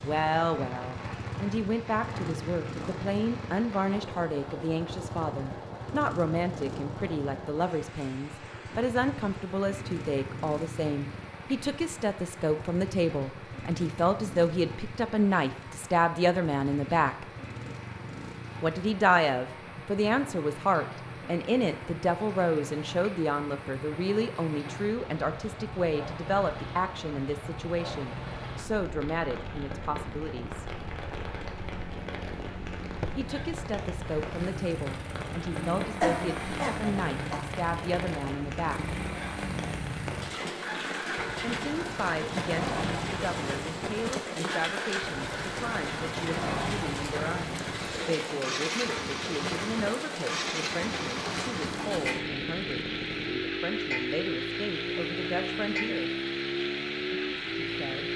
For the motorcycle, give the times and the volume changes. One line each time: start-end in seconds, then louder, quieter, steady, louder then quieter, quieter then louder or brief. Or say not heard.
0.0-58.1 louder.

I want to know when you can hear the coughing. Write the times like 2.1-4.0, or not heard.
36.0-37.4.